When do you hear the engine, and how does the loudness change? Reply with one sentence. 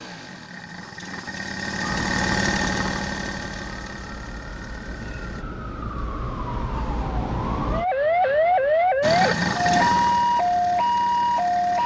The engine can be heard from 0.0 to 5.5 s, getting louder then quieter; and briefly from 9.0 to 11.8 s.